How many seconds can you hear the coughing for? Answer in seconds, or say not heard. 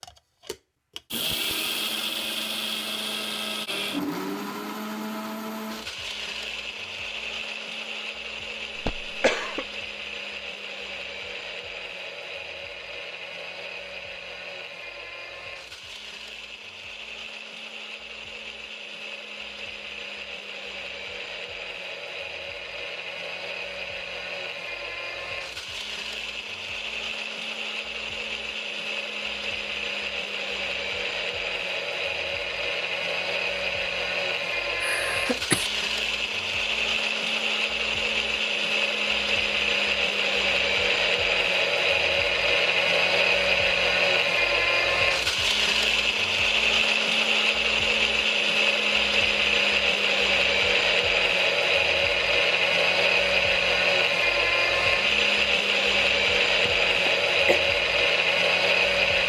3 s.